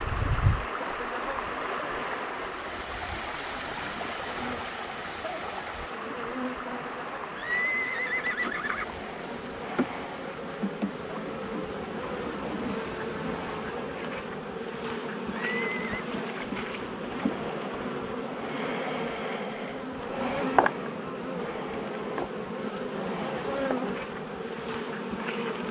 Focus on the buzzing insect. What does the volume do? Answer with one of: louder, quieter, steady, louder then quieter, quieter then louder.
louder.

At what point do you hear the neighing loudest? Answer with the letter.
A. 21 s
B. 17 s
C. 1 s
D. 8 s
D.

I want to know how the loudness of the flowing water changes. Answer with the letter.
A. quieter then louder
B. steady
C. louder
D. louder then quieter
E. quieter
E.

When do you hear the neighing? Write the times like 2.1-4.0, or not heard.
7.3-8.8, 15.5-16.1.